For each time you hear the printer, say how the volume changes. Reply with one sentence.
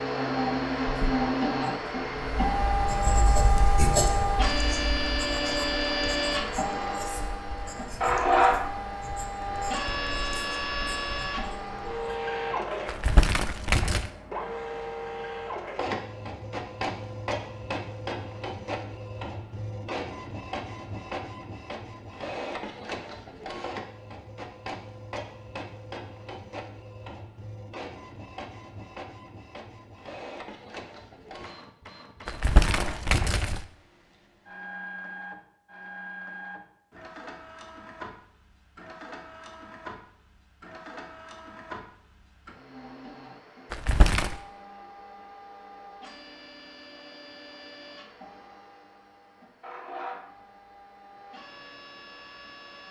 You can hear the printer from 0.0 to 52.8 s, getting quieter.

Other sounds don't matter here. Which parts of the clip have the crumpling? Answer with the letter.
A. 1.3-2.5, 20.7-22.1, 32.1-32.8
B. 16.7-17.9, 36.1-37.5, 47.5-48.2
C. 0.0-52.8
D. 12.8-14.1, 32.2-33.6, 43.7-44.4
D.